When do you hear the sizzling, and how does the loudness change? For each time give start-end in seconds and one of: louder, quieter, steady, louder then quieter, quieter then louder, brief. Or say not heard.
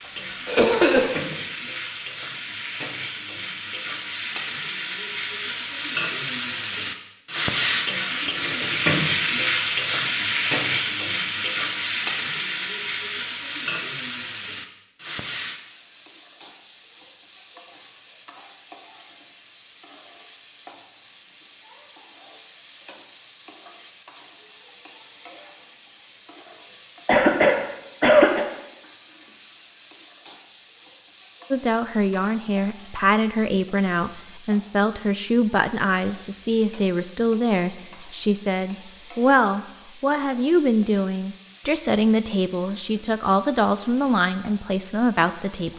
0.0-45.7 quieter.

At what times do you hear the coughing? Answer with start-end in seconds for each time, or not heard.
0.5-1.4, 27.1-28.4.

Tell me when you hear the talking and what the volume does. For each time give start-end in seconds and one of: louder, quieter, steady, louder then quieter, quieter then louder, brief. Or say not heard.
31.5-45.7 steady.